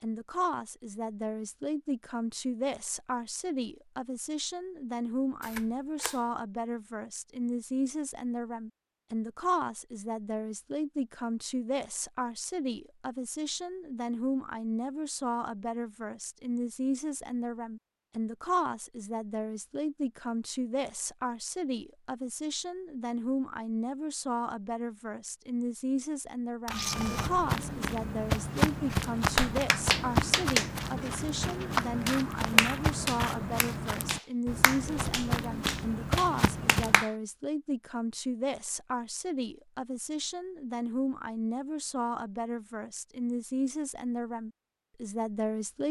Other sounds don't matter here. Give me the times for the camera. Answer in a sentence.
You can hear the camera from 5.4 to 6.2 s, from 26.6 to 27.3 s and from 32.0 to 33.4 s.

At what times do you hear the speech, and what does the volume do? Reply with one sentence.
You can hear the speech from 0.0 to 45.8 s, at a steady volume.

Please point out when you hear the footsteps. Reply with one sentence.
The footsteps can be heard from 26.9 to 37.0 s.